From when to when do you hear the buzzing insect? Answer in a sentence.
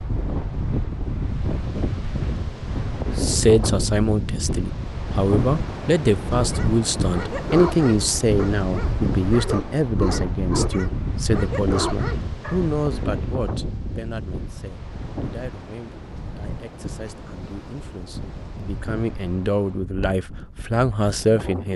You can't hear the buzzing insect here.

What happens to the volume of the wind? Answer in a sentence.
The loudness of the wind goes down.